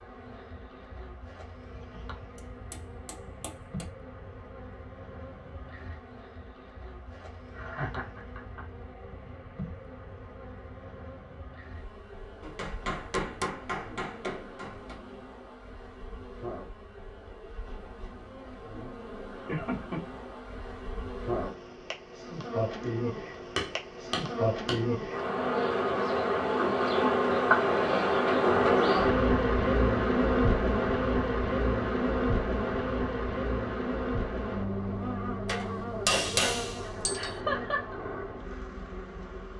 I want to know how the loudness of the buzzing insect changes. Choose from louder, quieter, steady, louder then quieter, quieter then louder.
louder then quieter.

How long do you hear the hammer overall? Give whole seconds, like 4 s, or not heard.
7 s.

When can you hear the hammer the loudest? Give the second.
36 s.